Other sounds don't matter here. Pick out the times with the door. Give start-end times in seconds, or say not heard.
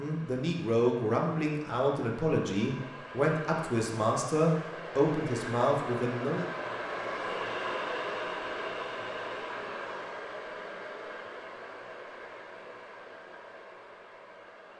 not heard.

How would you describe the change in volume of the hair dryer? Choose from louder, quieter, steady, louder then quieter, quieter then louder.
louder then quieter.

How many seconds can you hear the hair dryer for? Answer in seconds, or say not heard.
15 s.